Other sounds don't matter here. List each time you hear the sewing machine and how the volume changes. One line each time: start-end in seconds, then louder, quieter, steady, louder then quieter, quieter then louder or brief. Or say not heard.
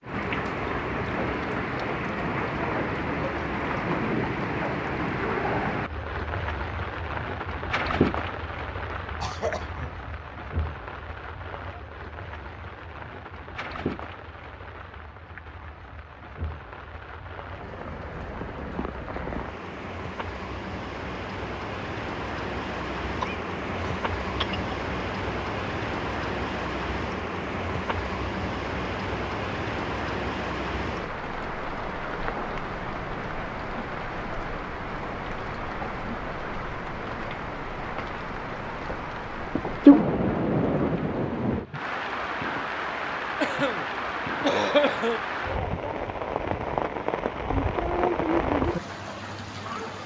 not heard.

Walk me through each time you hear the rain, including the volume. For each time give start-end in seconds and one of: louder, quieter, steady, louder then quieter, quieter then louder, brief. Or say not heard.
0.0-50.0 quieter then louder.